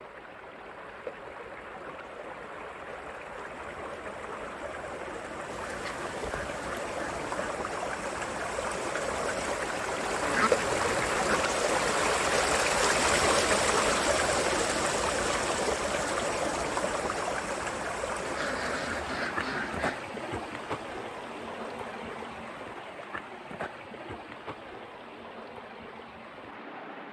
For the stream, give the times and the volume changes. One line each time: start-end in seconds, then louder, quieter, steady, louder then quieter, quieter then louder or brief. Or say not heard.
0.0-27.0 louder then quieter.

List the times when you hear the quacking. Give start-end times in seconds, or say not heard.
5.5-7.5, 10.2-11.4, 18.2-20.0.